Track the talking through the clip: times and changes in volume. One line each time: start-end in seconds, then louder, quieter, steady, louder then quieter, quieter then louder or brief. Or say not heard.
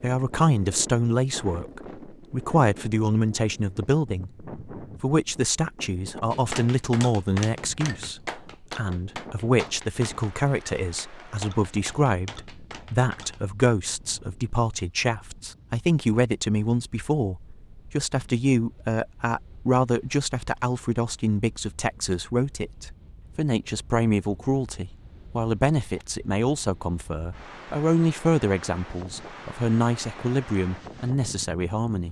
0.0-32.0 steady.